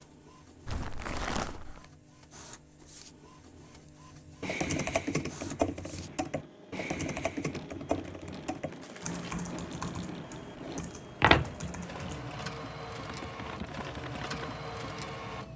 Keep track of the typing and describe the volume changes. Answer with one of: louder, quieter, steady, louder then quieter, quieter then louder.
quieter.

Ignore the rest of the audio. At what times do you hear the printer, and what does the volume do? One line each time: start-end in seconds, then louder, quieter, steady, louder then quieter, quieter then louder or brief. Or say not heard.
0.0-15.5 louder.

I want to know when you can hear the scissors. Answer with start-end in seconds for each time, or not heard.
11.2-12.2.